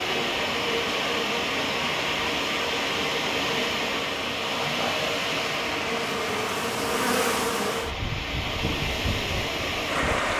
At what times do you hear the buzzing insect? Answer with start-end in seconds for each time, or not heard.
0.0-10.3.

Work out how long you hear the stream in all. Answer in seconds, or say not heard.
10 s.